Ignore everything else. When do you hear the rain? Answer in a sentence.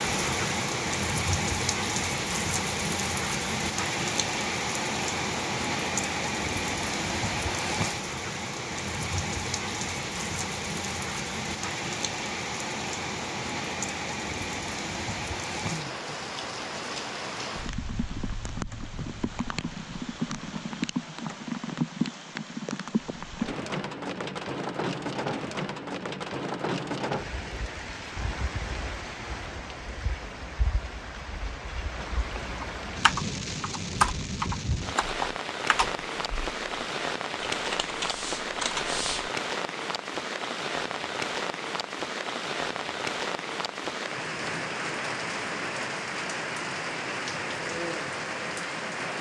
You can hear the rain from 0.0 to 49.1 s.